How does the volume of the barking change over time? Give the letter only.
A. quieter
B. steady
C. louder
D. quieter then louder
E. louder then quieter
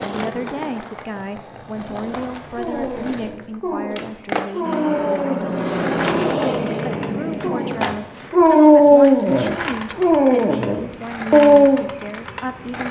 C.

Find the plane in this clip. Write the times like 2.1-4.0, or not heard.
4.6-8.0.